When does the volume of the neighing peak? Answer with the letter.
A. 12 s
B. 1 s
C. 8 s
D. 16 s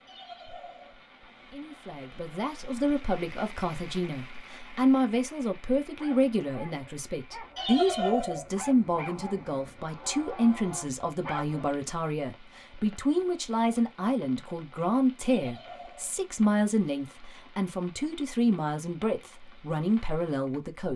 C.